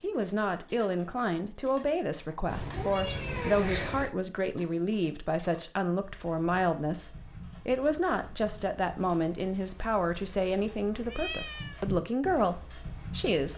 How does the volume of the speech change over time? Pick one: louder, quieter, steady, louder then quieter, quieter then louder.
steady.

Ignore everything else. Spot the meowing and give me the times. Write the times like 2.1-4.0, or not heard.
2.5-4.2, 11.1-11.8.